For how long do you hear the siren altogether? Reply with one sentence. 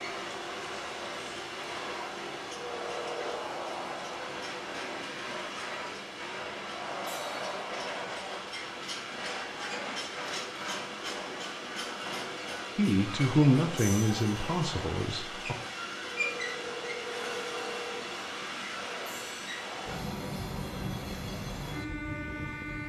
The siren can't be heard in this clip.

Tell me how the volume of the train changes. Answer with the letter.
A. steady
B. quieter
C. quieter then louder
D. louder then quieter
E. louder
A.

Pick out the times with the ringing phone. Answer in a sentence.
The ringing phone can be heard from 2.6 to 3.4 s and from 16.1 to 18.1 s.